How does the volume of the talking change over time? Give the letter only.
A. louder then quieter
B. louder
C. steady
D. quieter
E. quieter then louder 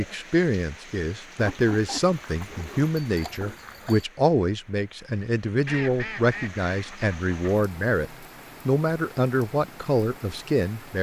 C.